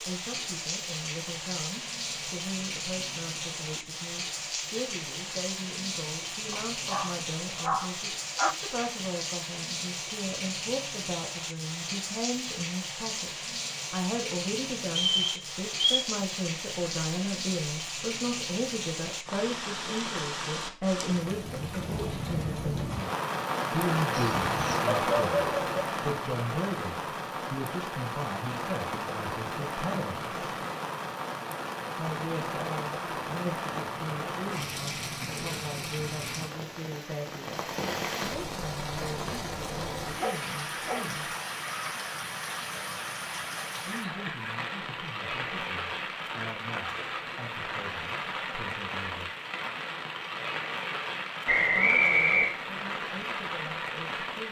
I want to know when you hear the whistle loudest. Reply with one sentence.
The volume of the whistle peaks at 52 seconds.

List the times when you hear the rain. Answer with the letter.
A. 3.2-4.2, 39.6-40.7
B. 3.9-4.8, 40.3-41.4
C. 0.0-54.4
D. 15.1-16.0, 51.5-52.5
C.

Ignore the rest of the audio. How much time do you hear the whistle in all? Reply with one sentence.
You can hear the whistle for 2 seconds altogether.